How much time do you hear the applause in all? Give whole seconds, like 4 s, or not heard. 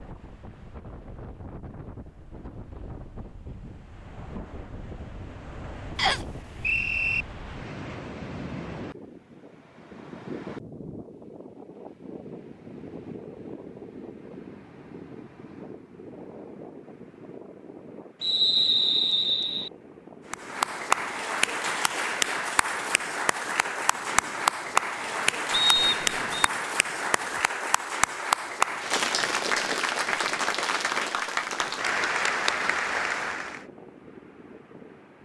13 s.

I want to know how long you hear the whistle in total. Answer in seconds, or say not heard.
4 s.